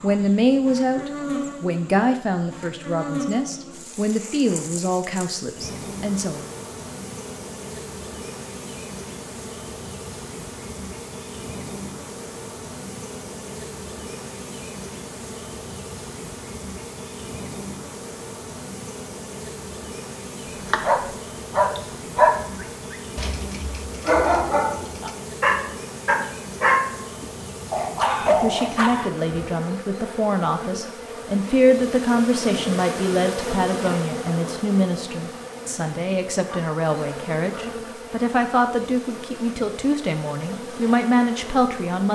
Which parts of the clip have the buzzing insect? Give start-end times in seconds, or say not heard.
0.0-42.1.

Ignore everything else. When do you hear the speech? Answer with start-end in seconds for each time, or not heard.
0.0-6.5, 28.2-42.1.